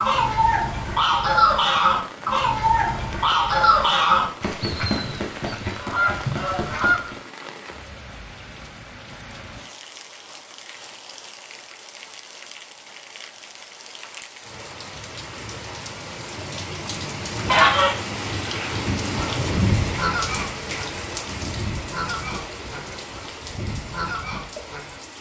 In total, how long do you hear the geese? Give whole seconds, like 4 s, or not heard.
15 s.